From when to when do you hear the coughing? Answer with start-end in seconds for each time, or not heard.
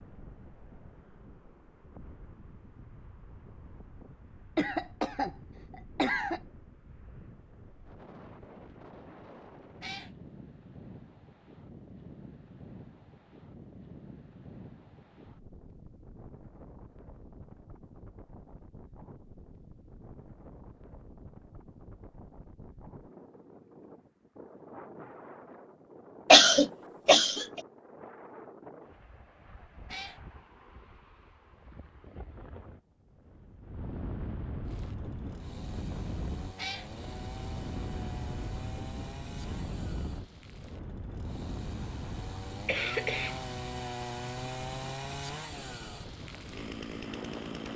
4.5-6.4, 26.3-27.6, 41.8-43.5.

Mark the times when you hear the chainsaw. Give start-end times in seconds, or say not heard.
34.6-47.7.